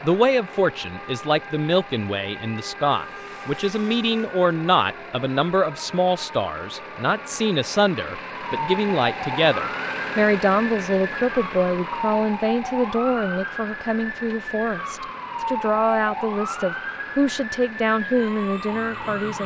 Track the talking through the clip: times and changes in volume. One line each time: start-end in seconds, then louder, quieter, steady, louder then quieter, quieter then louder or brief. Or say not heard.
0.0-19.4 steady.